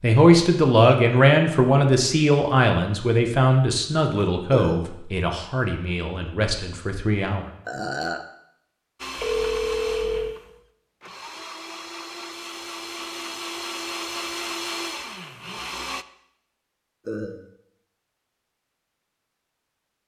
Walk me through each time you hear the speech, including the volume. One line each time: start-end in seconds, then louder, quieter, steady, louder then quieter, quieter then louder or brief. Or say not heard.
0.0-7.5 quieter.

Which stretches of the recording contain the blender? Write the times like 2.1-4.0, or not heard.
8.9-16.1.